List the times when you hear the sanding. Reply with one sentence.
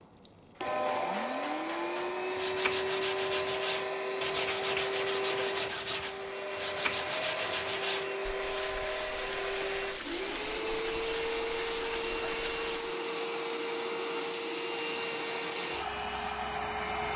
The sanding can be heard from 2.1 to 12.9 s.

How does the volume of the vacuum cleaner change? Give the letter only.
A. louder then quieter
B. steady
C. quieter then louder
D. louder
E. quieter
B.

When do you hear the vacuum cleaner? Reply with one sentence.
You can hear the vacuum cleaner from 0.0 to 17.1 s.